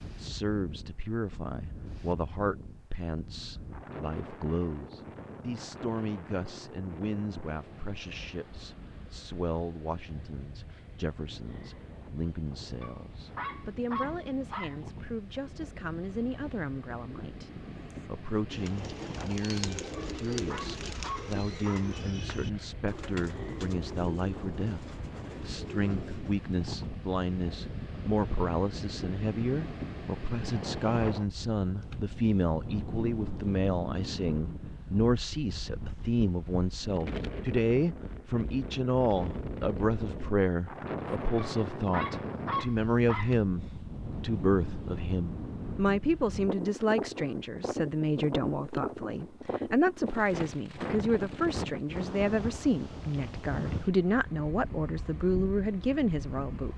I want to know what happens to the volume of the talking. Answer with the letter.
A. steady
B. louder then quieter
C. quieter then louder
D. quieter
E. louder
E.